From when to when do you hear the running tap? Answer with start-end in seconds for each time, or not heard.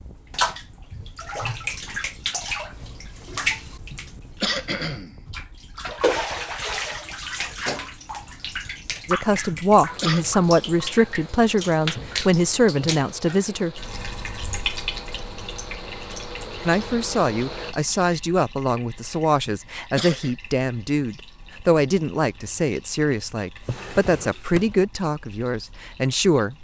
0.0-26.5.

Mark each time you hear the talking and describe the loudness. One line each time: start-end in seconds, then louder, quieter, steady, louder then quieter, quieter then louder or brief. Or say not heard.
9.1-13.8 steady
16.6-26.5 steady.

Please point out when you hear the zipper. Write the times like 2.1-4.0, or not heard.
not heard.